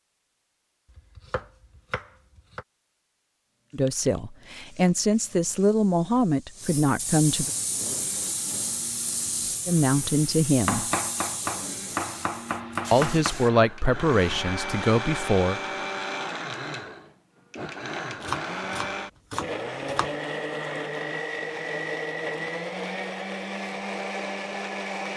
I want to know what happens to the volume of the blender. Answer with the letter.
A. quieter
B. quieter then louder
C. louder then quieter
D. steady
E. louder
E.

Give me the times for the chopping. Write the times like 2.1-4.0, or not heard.
0.8-2.6, 10.7-13.3, 18.2-20.1.